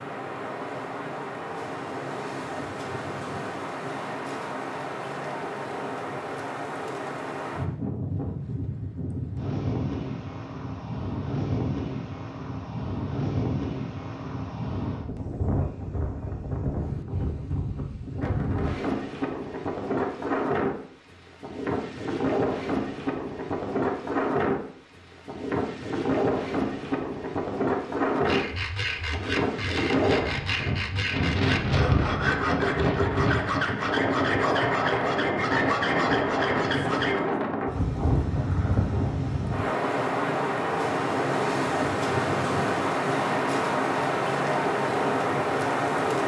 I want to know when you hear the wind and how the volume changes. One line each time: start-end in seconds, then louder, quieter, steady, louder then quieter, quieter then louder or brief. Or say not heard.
0.0-46.2 louder.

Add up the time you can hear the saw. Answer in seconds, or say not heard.
9 s.